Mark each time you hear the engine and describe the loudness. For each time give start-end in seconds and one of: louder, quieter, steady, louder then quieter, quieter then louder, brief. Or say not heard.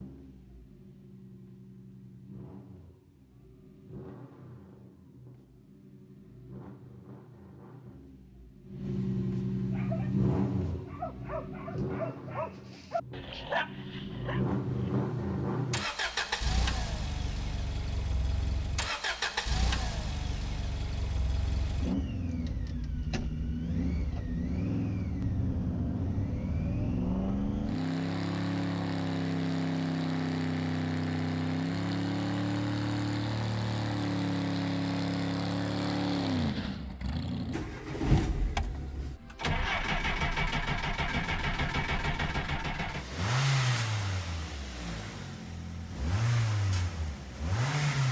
0.0-48.0 louder.